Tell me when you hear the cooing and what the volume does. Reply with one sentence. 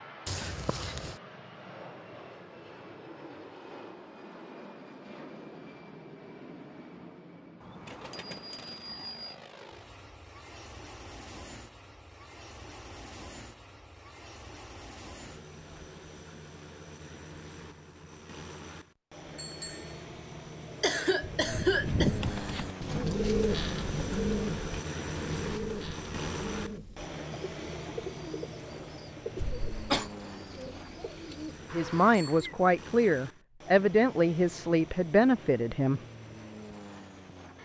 You can hear the cooing from 21.2 to 32.5 s, getting quieter.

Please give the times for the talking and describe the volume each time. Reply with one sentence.
The talking can be heard from 31.7 to 36.0 s, at a steady volume.